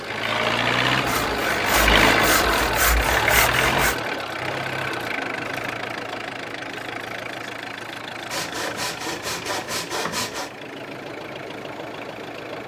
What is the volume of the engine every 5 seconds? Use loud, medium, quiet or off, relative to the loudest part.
loud, medium, quiet.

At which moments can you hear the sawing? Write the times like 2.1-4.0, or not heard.
1.1-4.0, 8.3-10.5.